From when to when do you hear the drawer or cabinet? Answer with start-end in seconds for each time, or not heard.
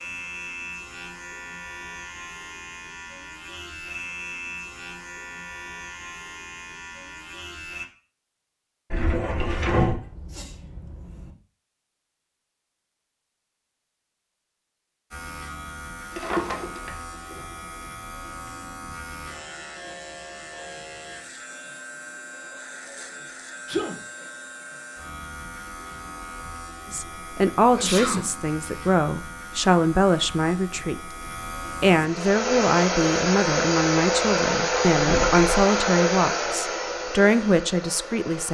8.9-10.0, 16.1-17.4, 35.0-35.5.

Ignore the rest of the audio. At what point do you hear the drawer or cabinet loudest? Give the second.
10 s.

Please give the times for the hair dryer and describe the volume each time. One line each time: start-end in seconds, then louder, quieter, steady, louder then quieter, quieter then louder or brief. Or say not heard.
32.0-38.5 quieter.